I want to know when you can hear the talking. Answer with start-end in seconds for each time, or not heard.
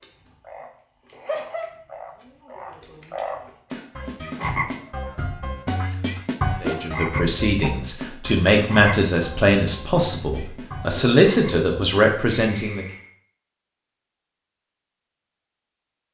6.6-12.8.